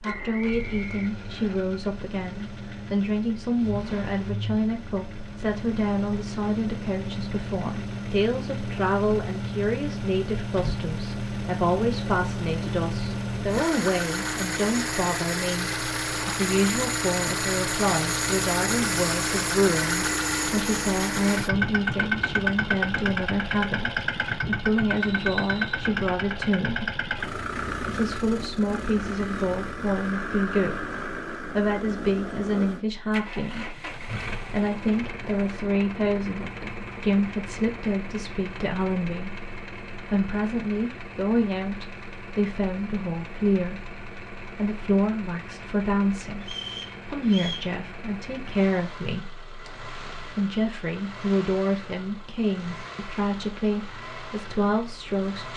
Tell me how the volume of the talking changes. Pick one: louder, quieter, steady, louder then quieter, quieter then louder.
steady.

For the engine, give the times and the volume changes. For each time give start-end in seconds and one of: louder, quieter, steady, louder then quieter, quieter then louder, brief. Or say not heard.
0.0-55.5 louder then quieter.